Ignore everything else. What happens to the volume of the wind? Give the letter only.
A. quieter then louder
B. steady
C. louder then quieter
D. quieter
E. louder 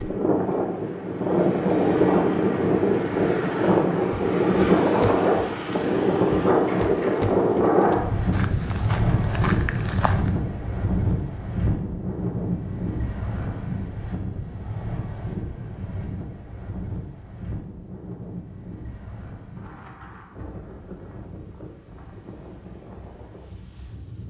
D.